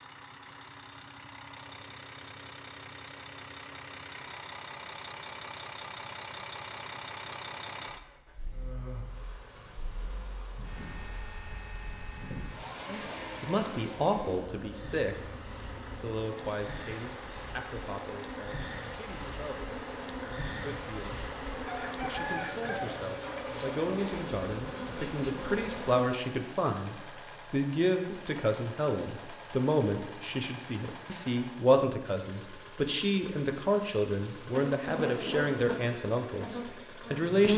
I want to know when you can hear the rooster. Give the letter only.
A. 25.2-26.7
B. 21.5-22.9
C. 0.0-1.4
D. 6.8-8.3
B.